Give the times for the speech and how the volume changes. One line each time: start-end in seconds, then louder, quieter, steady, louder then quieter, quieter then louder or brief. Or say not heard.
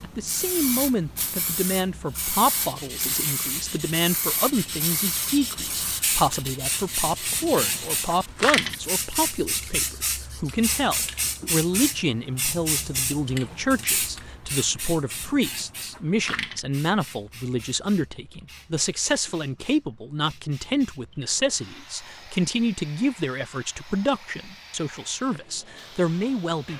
0.0-26.7 steady.